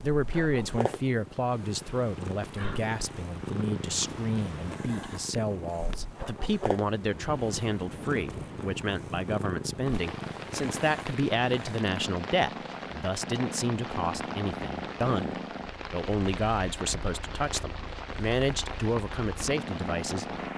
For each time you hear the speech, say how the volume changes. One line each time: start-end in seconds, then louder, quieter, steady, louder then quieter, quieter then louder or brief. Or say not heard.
0.0-20.2 steady.